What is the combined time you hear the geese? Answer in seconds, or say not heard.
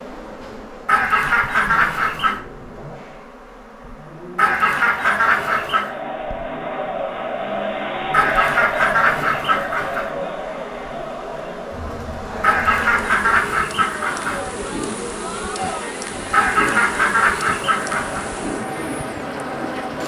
9 s.